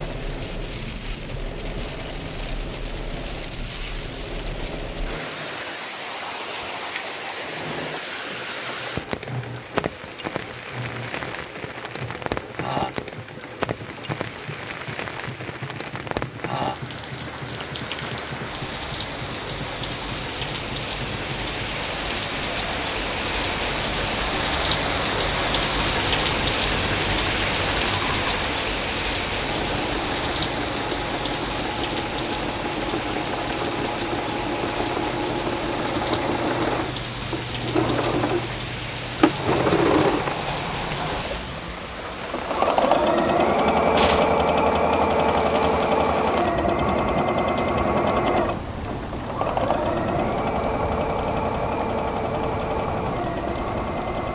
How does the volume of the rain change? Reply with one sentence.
The loudness of the rain goes up, then down.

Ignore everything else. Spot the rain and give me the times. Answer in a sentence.
The rain can be heard from 0.0 to 54.3 s.